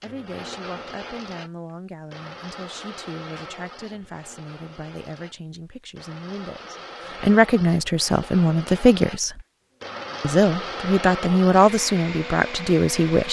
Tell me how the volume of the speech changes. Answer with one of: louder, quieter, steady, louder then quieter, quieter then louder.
louder.